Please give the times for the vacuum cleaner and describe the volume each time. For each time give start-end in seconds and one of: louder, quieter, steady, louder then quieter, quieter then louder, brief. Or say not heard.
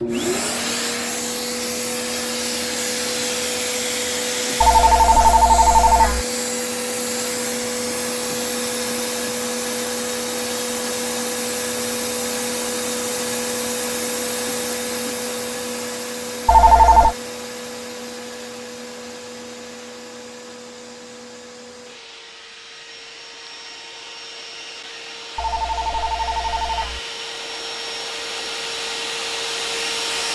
0.0-30.3 quieter then louder.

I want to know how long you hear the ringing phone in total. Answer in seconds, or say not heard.
4 s.